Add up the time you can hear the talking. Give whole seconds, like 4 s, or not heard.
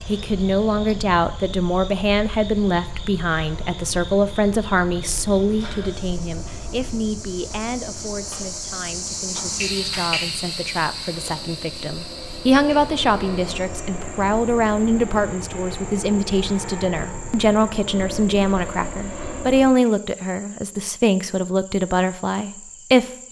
23 s.